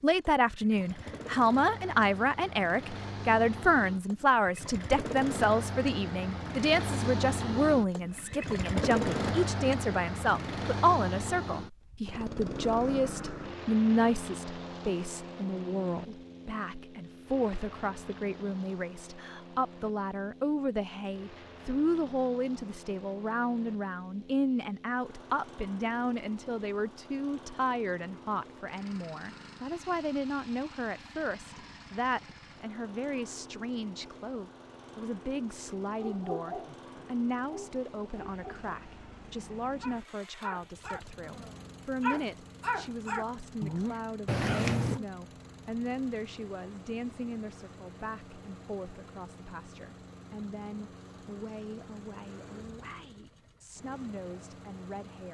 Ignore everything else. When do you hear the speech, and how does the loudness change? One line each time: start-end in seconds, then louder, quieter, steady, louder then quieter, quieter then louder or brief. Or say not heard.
0.0-55.2 quieter.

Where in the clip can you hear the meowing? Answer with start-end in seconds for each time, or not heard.
44.2-45.0.